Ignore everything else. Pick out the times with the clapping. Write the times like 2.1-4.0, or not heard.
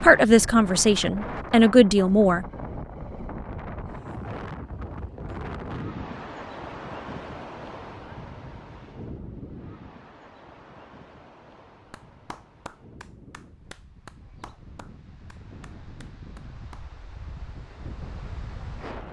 11.9-16.9.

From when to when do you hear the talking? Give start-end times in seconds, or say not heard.
0.0-2.5.